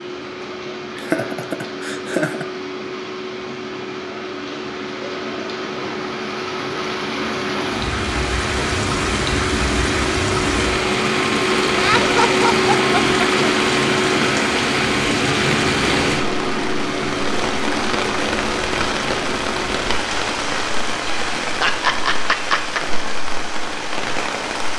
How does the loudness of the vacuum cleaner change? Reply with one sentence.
The loudness of the vacuum cleaner goes up, then down.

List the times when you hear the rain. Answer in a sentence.
The rain can be heard from 0.0 to 24.7 s.